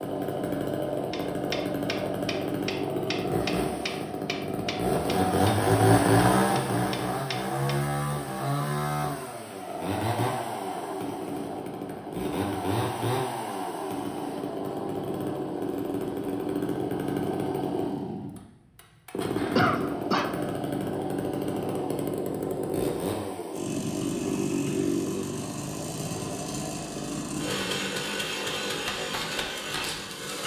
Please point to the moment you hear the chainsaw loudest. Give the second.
6 s.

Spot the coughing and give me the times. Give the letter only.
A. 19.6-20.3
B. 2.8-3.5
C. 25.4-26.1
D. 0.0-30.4
A.